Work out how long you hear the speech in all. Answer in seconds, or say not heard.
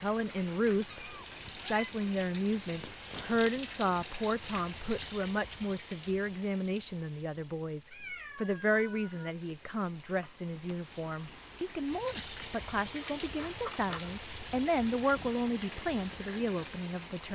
17 s.